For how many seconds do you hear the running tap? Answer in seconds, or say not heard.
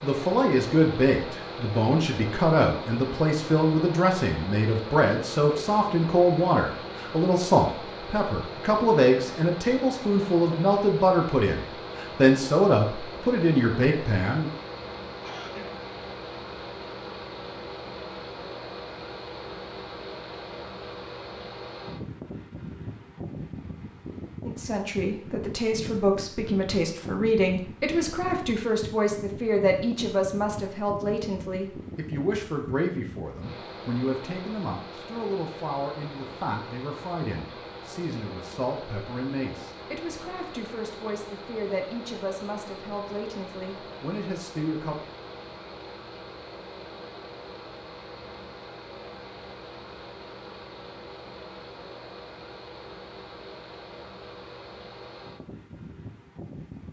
not heard.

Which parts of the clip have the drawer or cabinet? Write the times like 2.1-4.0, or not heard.
not heard.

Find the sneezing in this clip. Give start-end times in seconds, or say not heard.
15.2-15.7.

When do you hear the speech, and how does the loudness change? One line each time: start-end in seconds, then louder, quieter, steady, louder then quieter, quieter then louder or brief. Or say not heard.
0.0-14.5 steady
24.4-45.0 quieter.